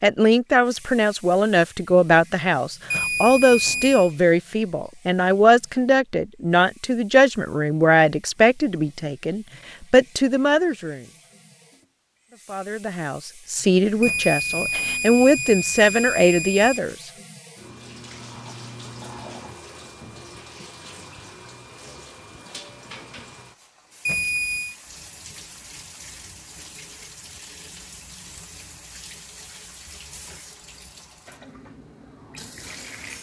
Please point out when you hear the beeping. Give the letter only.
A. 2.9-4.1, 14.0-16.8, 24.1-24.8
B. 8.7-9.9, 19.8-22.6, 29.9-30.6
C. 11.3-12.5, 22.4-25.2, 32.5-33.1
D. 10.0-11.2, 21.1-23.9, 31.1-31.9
A.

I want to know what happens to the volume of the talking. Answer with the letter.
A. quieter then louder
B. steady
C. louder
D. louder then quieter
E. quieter
B.